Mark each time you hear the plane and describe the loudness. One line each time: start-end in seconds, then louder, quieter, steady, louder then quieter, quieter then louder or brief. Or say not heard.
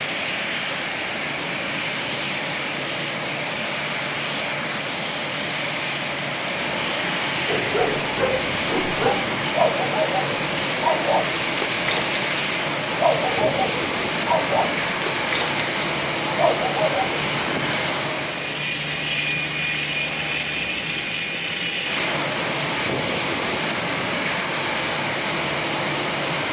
0.0-26.4 steady.